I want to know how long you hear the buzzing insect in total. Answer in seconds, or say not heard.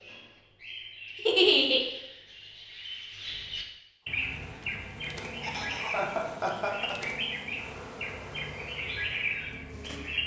6 s.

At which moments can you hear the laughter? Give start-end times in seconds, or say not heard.
1.2-1.8, 5.4-7.0.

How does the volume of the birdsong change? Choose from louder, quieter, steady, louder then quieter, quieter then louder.
louder.